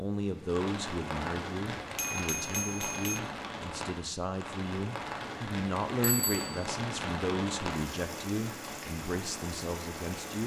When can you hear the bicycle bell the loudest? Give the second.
2 s.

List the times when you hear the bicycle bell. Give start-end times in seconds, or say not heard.
1.8-3.2, 6.0-6.7.